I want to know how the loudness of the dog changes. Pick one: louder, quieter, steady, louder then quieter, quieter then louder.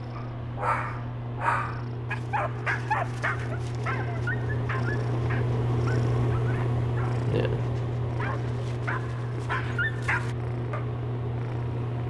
quieter then louder.